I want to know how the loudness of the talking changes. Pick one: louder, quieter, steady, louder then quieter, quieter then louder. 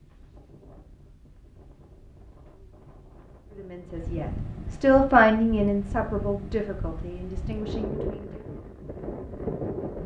louder then quieter.